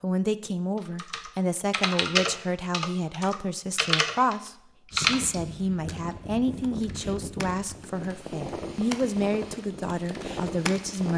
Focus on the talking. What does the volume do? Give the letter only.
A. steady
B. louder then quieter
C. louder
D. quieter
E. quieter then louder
A.